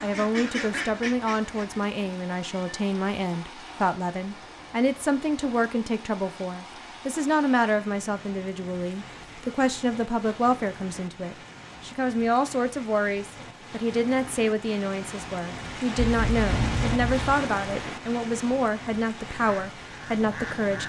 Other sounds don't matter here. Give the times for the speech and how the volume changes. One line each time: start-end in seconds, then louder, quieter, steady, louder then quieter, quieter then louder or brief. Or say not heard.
0.0-20.8 steady.